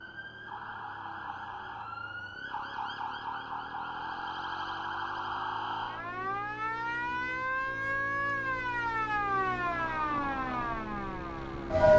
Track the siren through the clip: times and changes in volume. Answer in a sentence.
The siren can be heard from 0.0 to 11.9 s, getting louder.